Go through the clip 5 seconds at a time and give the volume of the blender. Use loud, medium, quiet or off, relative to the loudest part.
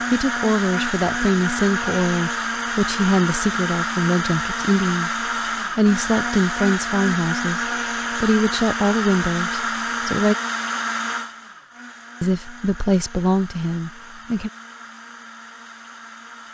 loud, loud, medium, quiet.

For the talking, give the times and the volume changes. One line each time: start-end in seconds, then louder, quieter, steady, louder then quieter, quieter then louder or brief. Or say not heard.
0.1-10.3 steady
12.2-14.5 brief.